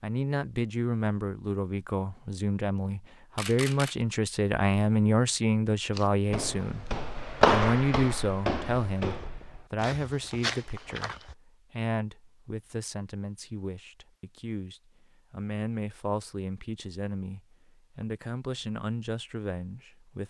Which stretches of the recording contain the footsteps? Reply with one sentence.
The footsteps can be heard from 6.0 to 11.3 s.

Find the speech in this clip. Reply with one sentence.
The speech can be heard from 0.0 to 20.2 s.